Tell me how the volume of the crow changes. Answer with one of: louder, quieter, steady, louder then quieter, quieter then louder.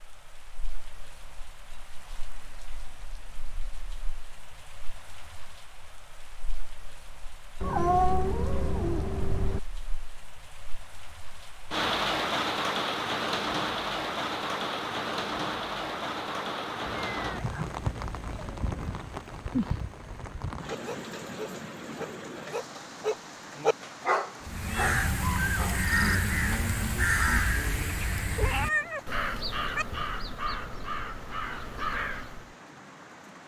quieter.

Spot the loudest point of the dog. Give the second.
24 s.